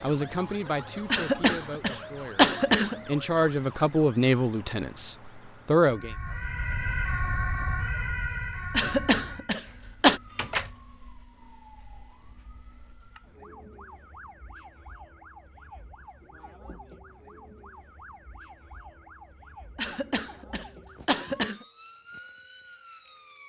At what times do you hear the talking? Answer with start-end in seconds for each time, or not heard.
0.0-6.2.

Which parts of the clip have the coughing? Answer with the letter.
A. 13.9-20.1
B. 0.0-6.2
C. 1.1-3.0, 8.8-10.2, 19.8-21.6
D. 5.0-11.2
C.